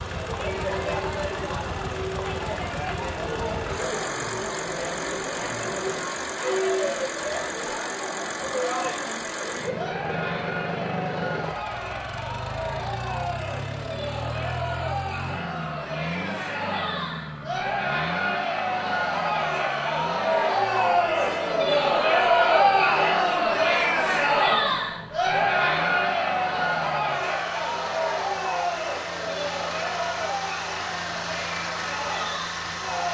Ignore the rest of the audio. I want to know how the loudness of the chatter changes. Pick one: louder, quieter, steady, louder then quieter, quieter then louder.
louder then quieter.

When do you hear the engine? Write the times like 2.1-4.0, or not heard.
0.0-33.1.